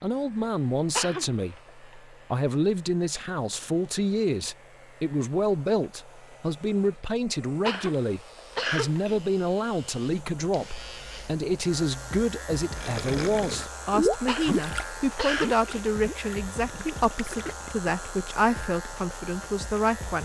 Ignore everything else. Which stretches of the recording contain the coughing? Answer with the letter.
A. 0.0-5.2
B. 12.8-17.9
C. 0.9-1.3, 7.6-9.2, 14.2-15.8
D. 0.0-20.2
C.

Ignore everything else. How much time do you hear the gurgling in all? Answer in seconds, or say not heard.
5 s.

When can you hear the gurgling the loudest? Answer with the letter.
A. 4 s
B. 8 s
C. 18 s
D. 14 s
D.